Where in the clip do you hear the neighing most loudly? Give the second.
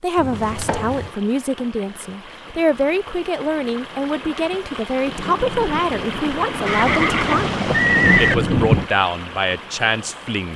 8 s.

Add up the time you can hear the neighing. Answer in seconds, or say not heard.
3 s.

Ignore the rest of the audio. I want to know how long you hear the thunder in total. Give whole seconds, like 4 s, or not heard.
4 s.